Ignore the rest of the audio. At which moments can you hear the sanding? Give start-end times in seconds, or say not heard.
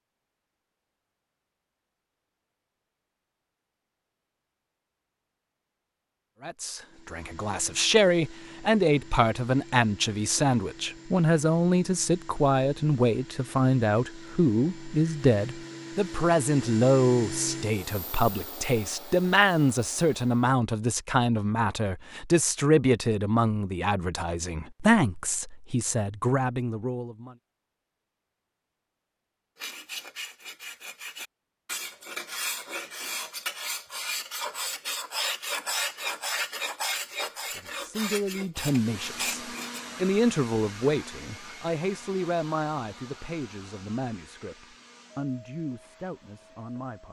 29.6-39.8.